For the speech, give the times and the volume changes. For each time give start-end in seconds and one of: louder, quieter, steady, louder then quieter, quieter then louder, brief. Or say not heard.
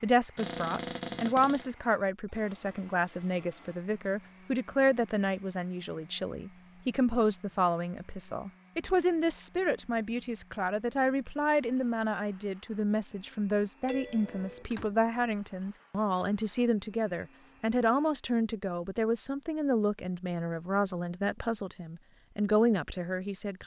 0.0-23.6 steady.